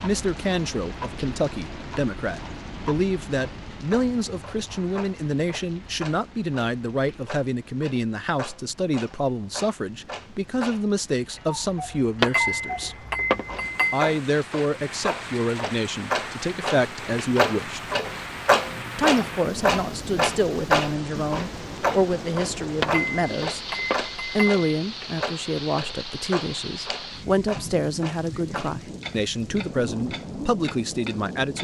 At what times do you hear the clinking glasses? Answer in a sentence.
You can hear the clinking glasses from 12.2 to 14.1 s and from 22.8 to 24.6 s.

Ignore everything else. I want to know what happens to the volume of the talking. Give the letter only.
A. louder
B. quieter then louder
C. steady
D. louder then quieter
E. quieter
C.